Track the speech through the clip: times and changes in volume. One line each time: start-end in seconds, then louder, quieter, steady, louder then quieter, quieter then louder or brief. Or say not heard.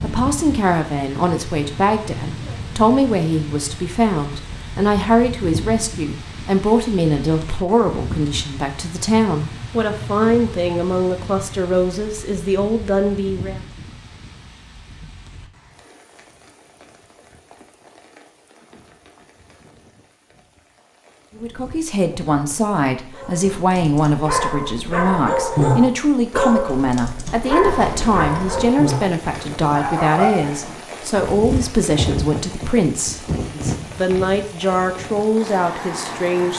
0.0-13.6 steady
21.4-36.5 steady.